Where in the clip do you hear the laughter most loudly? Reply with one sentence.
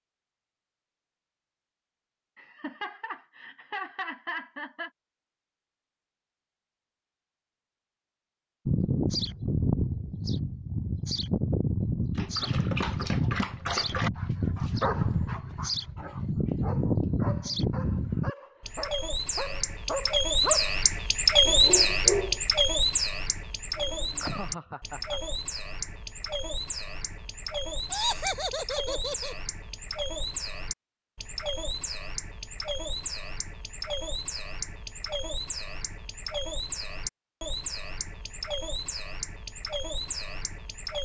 The loudest moment of the laughter is at 28 seconds.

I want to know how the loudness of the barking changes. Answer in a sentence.
The loudness of the barking goes down, then up.